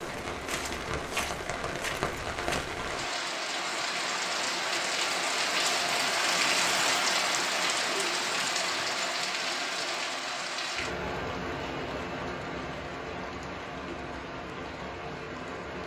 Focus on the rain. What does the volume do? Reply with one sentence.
The loudness of the rain goes up, then down.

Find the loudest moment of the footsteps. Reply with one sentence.
The loudest moment of the footsteps is at 1 second.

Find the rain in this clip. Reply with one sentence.
You can hear the rain from 0.0 to 15.8 s.